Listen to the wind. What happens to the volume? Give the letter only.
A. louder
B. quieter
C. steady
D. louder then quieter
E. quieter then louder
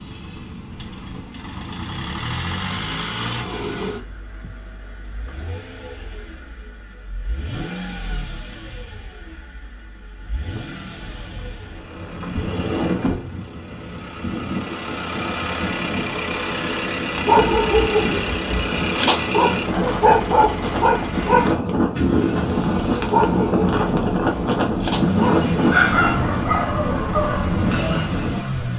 A.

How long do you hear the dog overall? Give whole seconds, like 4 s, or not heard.
11 s.